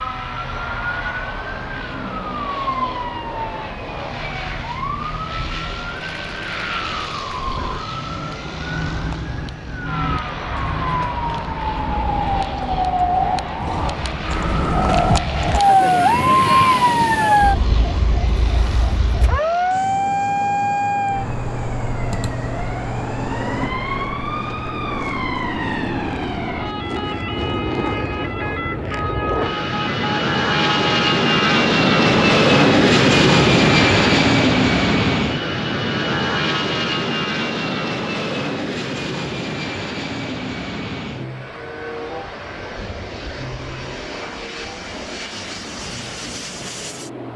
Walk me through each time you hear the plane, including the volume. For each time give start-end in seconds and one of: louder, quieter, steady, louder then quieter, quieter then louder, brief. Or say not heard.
0.0-47.3 louder then quieter.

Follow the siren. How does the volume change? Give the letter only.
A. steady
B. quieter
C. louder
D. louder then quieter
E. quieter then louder
D.